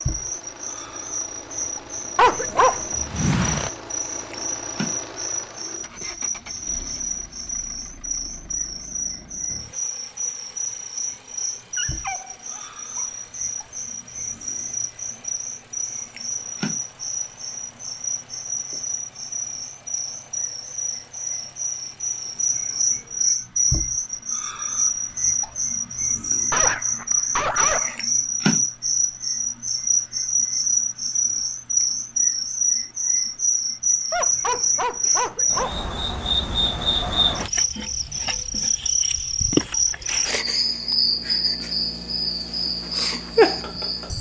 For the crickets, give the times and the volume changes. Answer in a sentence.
The crickets can be heard from 0.0 to 44.1 s, getting louder.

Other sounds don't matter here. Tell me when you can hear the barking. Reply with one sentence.
You can hear the barking from 2.1 to 3.7 s, from 11.8 to 13.2 s, from 26.5 to 28.1 s and from 34.1 to 35.8 s.